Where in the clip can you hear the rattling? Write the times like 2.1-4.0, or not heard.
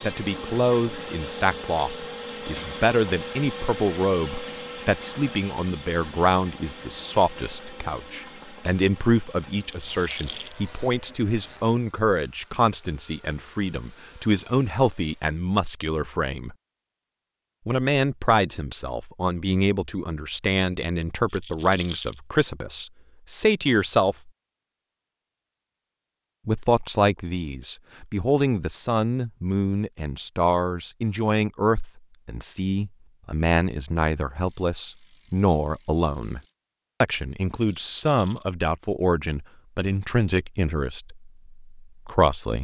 9.6-10.6, 21.2-22.1, 37.5-38.5.